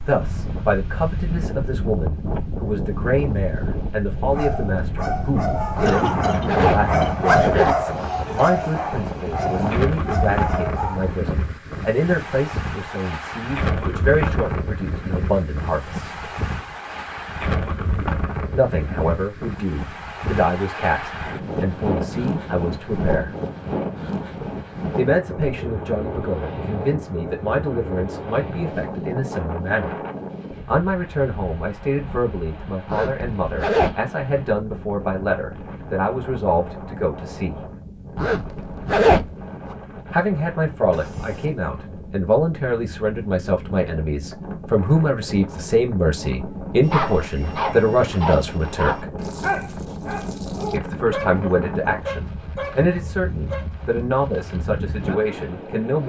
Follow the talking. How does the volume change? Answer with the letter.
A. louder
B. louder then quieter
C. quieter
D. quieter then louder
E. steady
E.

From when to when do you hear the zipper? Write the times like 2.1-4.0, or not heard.
5.8-7.8, 32.9-34.0, 38.1-39.2.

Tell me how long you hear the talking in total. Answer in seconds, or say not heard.
47 s.